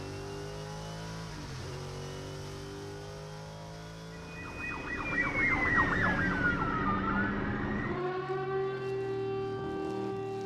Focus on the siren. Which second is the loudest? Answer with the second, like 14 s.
6 s.